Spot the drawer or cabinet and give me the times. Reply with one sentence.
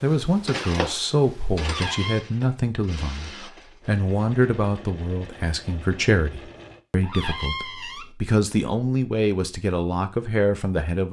You can hear the drawer or cabinet from 1.6 to 2.2 s and from 7.0 to 8.1 s.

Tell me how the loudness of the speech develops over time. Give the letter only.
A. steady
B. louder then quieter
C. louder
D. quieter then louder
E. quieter
A.